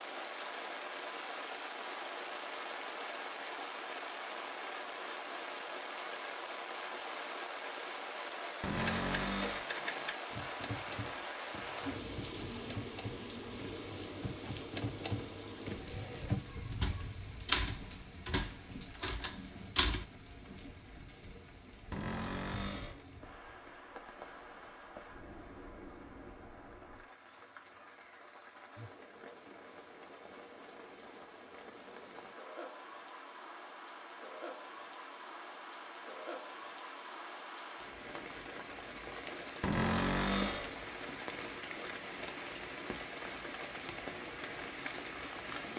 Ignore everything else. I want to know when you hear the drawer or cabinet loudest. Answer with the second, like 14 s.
40 s.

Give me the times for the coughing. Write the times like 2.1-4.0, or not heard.
not heard.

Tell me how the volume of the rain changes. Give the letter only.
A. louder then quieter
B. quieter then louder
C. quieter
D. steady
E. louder
B.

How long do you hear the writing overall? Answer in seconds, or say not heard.
not heard.